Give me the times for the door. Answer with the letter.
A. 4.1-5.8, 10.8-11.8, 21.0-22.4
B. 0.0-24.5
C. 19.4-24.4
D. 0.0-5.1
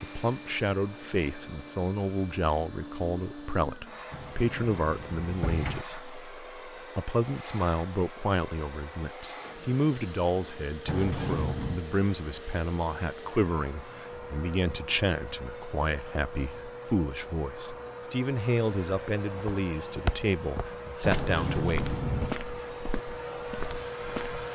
A.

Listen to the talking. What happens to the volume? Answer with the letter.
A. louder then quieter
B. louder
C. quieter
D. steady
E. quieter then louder
D.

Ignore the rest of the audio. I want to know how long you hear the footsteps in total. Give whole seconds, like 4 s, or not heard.
5 s.